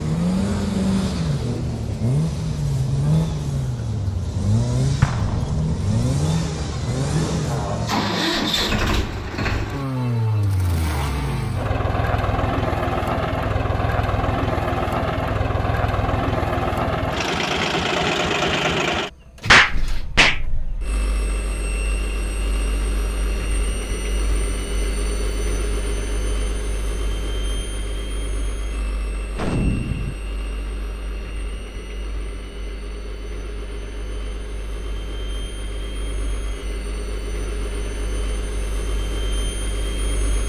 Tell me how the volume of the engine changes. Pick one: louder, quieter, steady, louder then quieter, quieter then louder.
quieter.